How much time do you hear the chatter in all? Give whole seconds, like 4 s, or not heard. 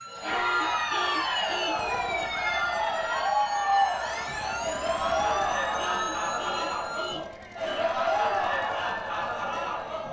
10 s.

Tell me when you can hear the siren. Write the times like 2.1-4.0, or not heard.
0.0-7.2.